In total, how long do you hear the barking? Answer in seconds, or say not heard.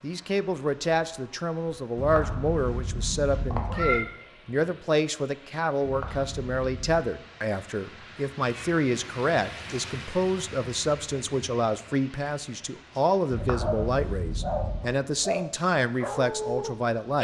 4 s.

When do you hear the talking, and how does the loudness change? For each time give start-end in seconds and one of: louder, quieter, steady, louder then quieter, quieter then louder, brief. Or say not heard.
0.0-17.2 steady.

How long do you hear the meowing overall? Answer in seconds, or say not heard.
5 s.